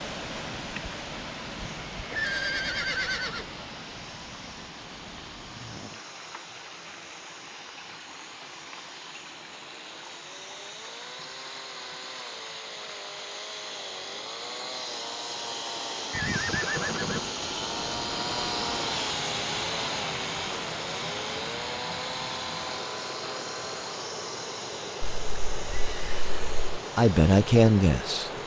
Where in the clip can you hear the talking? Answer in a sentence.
The talking can be heard from 26.9 to 28.3 s.